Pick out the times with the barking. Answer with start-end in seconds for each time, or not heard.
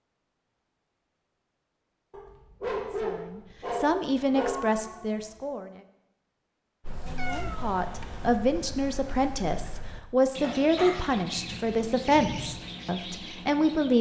2.1-4.7, 10.4-12.4.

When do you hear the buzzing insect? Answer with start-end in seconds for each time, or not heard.
not heard.